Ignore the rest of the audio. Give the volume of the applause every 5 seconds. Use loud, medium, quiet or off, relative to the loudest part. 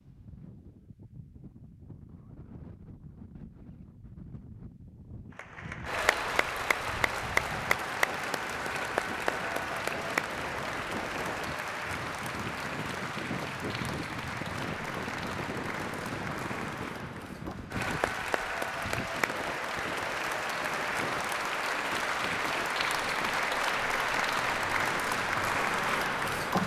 off, loud, medium, medium, loud, loud.